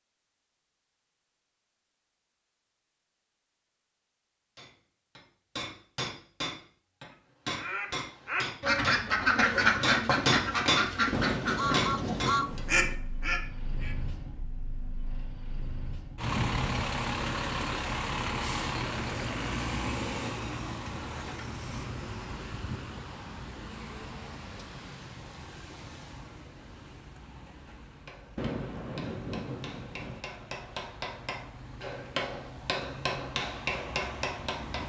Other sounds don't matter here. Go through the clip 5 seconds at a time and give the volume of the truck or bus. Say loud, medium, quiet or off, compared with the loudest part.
off, off, loud, loud, medium, quiet, quiet.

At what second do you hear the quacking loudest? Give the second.
10 s.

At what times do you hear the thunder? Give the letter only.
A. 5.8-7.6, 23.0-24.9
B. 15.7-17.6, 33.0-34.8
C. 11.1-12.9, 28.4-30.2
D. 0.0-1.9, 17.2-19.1
C.